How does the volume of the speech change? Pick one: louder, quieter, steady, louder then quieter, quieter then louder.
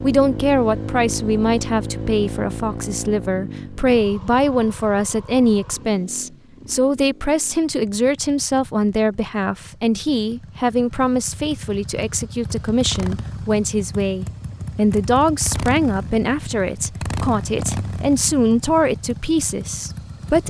steady.